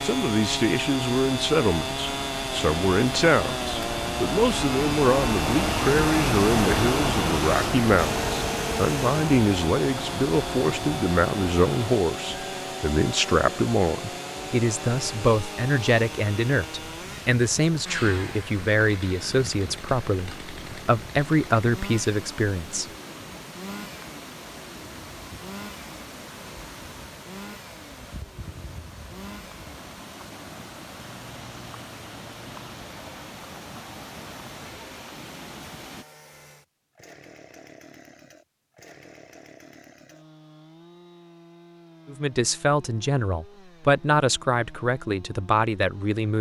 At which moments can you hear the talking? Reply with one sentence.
The talking can be heard from 0.0 to 22.9 s and from 42.0 to 46.3 s.